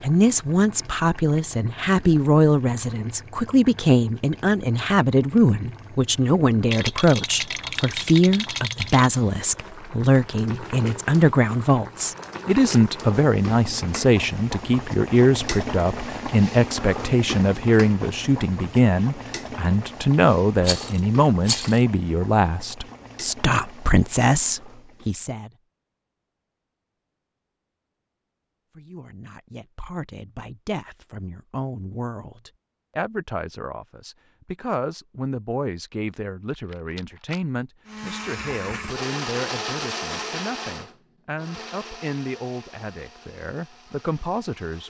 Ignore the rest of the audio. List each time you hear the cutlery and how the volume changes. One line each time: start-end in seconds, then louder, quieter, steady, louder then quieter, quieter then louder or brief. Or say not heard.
not heard.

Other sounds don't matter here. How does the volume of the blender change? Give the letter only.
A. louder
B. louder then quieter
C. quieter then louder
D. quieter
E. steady
D.